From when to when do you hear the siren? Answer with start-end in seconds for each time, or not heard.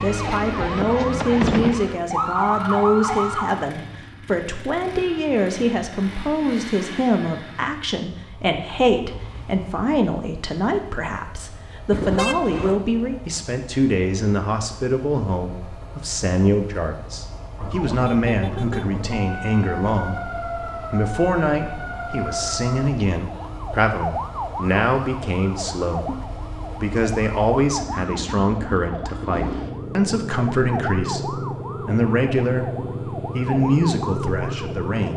0.0-3.7, 17.6-35.1.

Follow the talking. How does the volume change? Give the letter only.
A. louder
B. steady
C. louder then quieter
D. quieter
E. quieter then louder
B.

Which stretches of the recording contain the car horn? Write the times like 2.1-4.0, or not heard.
11.9-12.9.